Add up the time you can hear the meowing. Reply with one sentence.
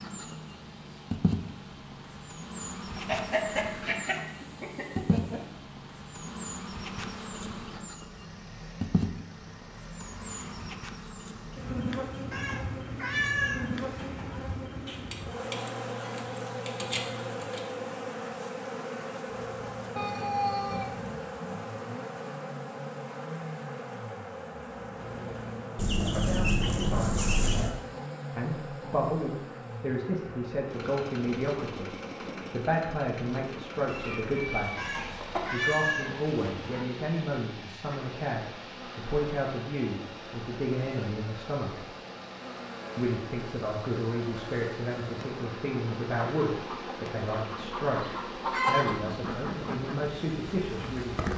The meowing can be heard for 5 seconds in total.